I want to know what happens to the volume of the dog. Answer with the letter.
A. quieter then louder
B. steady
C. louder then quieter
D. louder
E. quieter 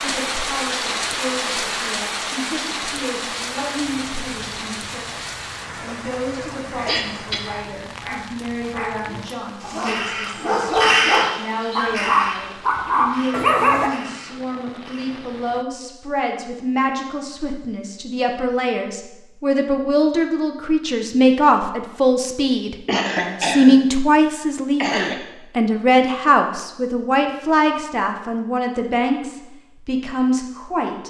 D.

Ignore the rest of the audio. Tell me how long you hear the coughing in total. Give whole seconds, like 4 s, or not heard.
3 s.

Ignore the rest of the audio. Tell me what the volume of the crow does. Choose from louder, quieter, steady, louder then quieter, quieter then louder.
louder then quieter.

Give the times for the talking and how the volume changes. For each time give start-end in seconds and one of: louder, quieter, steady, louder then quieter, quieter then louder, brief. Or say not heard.
0.0-31.0 louder.